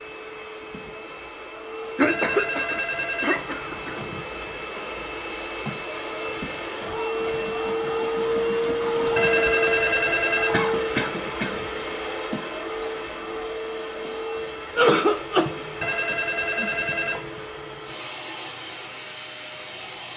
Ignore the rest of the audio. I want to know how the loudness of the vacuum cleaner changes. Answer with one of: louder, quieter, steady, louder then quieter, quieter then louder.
louder then quieter.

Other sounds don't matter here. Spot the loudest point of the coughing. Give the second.
15 s.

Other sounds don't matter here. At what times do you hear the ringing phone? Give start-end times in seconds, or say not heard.
2.0-4.2, 9.2-10.8, 15.8-17.3.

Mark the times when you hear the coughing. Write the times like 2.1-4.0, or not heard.
1.9-4.0, 10.5-11.6, 14.8-15.7.